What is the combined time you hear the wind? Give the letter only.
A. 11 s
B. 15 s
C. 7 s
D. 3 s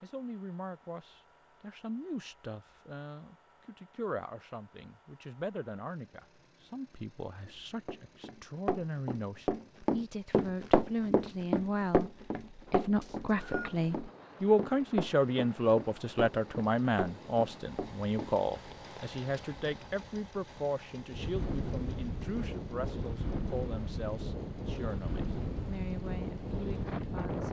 B.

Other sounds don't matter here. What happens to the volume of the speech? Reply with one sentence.
The volume of the speech goes up, then down.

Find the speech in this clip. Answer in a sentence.
You can hear the speech from 0.0 to 27.4 s.